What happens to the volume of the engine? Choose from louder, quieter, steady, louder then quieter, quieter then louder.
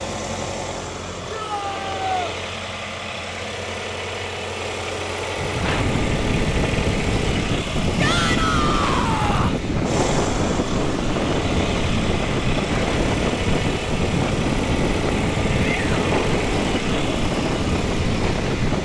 steady.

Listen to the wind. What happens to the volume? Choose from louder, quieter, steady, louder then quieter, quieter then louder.
steady.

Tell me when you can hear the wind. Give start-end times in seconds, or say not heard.
5.3-18.8.